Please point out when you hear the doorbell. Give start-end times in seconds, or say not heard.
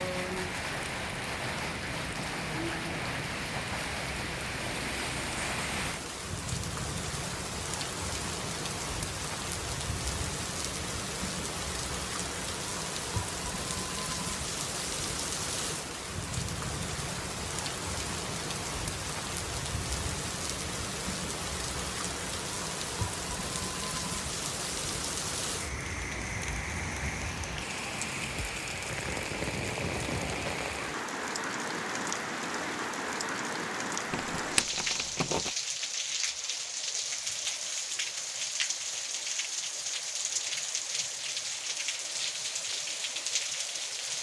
not heard.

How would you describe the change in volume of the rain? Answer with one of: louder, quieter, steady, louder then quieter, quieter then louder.
steady.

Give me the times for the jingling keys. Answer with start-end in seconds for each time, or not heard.
34.1-35.5.